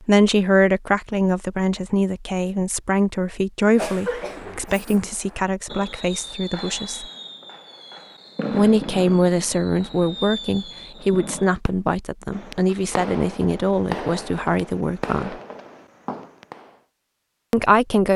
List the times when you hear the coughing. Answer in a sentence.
You can hear the coughing from 3.8 to 4.9 s.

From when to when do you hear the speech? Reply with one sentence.
You can hear the speech from 0.1 to 7.0 s, from 8.5 to 15.3 s and from 17.5 to 18.1 s.